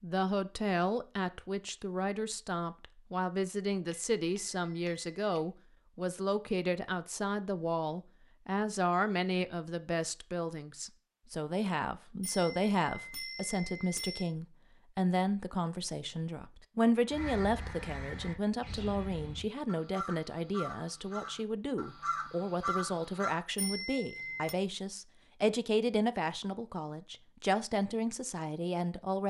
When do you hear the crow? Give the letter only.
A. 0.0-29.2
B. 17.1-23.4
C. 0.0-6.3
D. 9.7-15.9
B.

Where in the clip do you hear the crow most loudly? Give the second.
23 s.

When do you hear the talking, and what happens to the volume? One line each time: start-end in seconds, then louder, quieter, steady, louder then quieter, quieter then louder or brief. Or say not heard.
0.0-29.2 steady.